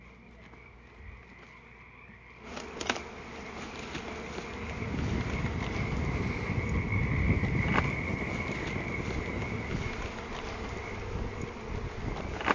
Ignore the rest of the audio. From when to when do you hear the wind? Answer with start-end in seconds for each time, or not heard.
4.5-12.5.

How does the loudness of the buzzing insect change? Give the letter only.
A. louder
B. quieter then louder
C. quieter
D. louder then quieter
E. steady
A.